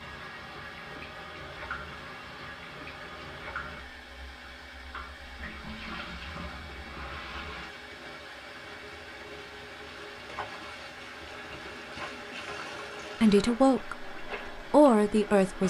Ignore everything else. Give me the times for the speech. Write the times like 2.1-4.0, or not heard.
13.2-15.6.